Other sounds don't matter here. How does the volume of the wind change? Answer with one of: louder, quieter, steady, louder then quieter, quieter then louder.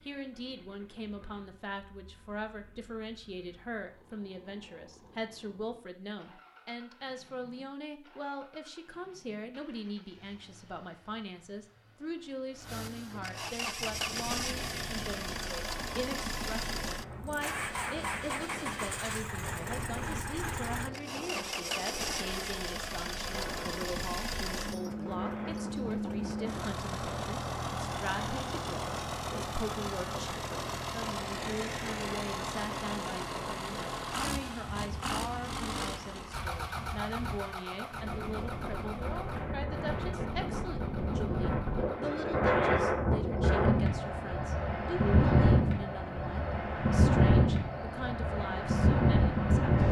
louder.